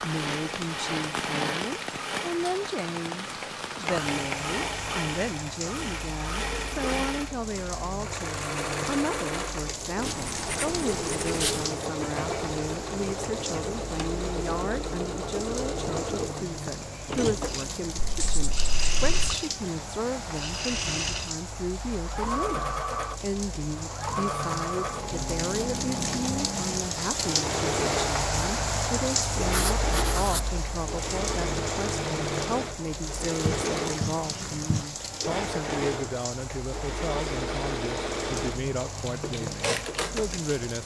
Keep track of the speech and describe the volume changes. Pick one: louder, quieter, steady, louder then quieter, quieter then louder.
steady.